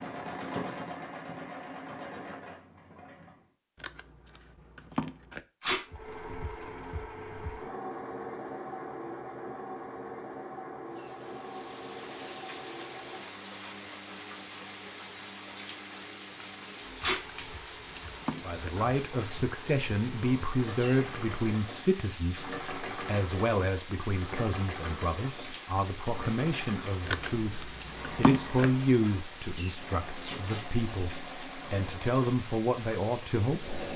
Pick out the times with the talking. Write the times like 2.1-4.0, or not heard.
18.4-33.8.